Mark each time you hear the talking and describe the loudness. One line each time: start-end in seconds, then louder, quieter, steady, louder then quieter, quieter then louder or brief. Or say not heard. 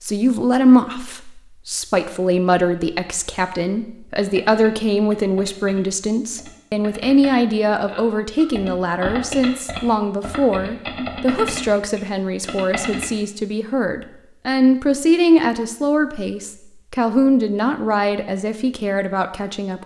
0.0-19.8 steady.